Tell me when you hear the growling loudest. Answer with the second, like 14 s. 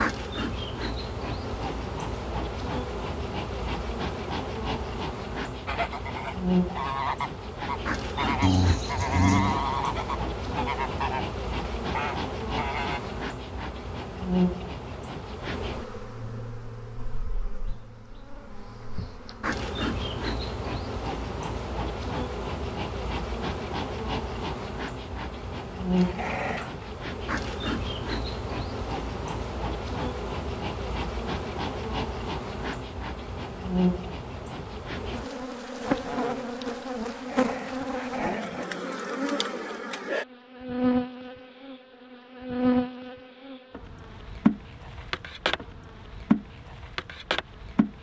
9 s.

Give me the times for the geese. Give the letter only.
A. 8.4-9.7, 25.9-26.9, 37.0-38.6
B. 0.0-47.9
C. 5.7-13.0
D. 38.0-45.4
C.